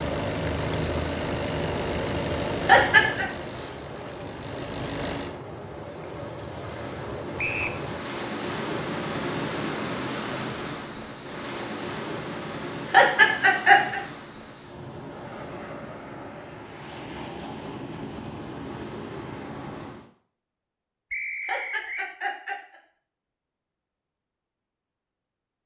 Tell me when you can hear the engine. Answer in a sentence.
You can hear the engine from 0.0 to 5.4 s.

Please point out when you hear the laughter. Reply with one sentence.
The laughter can be heard from 2.6 to 3.2 s, from 12.9 to 14.0 s and from 21.4 to 22.8 s.